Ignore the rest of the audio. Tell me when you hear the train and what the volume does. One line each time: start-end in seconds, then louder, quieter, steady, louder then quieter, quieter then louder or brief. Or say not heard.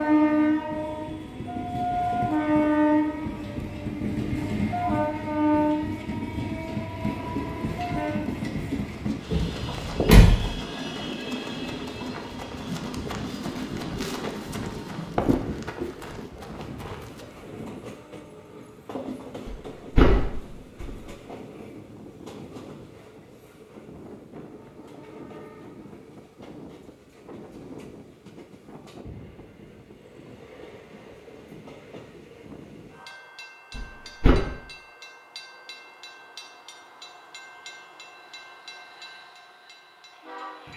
0.0-40.7 quieter.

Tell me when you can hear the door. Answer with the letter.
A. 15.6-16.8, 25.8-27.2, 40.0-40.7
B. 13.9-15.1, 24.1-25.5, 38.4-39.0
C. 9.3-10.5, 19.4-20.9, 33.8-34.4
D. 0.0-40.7
C.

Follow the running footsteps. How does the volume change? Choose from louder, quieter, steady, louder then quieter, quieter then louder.
louder then quieter.